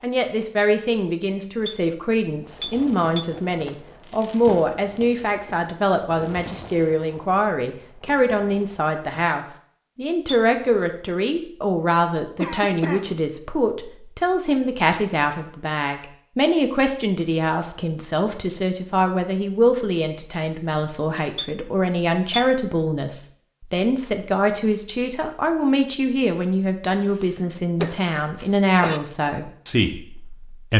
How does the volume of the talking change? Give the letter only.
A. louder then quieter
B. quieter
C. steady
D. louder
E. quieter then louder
C.